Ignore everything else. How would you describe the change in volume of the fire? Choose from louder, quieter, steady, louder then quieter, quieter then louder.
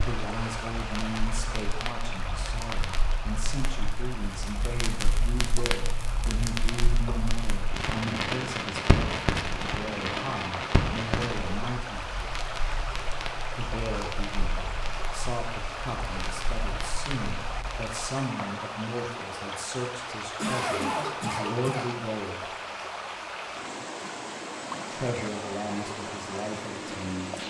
louder then quieter.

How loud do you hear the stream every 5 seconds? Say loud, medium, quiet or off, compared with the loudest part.
loud, medium, loud, loud, loud, loud.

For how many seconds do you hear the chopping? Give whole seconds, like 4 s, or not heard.
not heard.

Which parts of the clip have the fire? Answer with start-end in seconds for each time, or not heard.
0.0-17.9.